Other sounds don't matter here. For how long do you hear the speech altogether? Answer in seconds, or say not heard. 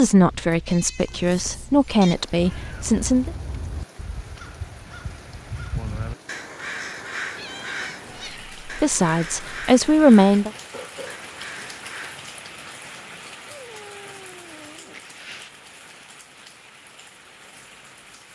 5 s.